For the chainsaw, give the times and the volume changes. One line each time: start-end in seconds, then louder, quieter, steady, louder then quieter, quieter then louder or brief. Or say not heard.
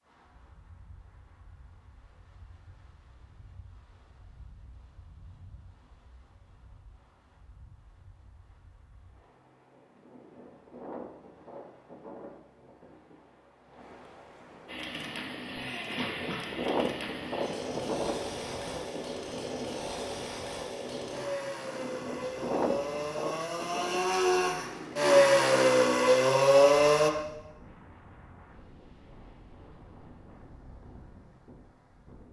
14.7-27.1 louder.